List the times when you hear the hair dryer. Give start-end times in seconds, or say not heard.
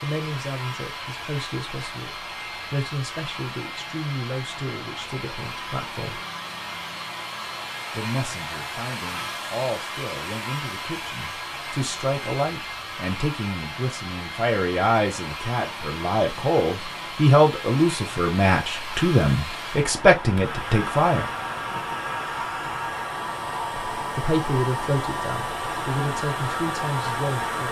0.0-27.6.